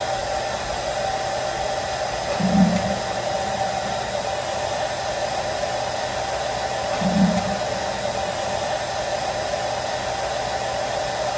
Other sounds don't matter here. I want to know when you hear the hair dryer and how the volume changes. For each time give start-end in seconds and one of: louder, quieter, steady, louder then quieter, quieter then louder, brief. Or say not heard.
0.0-11.3 steady.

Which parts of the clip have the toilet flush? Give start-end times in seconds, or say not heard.
2.2-4.0, 6.8-8.7.